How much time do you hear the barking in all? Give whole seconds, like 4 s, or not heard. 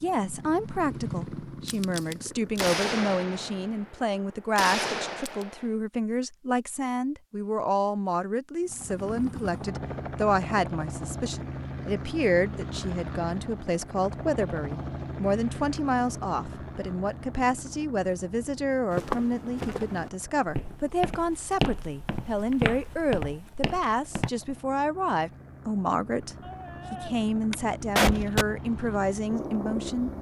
not heard.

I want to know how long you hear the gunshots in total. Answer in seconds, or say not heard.
5 s.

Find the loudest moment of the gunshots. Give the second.
28 s.